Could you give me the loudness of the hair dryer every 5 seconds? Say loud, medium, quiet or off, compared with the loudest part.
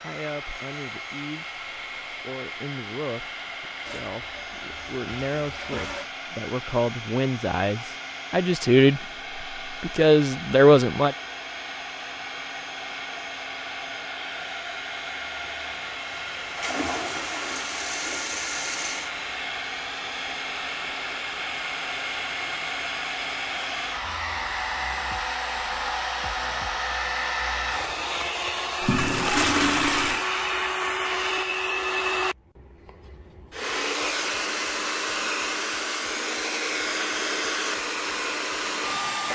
medium, medium, medium, medium, loud, loud, loud, loud.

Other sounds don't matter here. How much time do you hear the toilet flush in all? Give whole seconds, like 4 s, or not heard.
6 s.